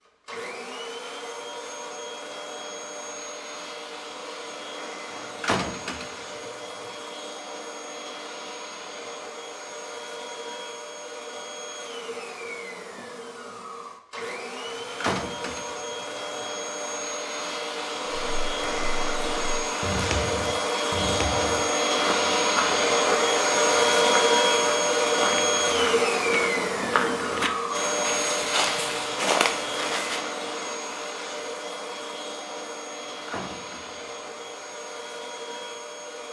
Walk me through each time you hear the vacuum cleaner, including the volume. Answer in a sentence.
The vacuum cleaner can be heard from 0.0 to 36.2 s, getting louder then quieter.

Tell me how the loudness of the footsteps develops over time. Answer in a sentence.
The volume of the footsteps goes up.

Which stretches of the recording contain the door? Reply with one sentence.
The door can be heard from 5.1 to 6.5 s, from 14.7 to 16.4 s and from 33.0 to 34.1 s.